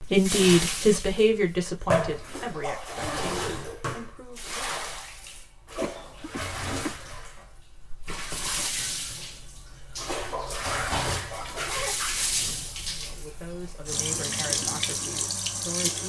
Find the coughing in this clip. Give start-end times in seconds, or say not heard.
5.8-7.0.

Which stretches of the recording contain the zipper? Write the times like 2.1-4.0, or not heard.
2.9-3.8, 8.1-8.7, 11.6-12.6.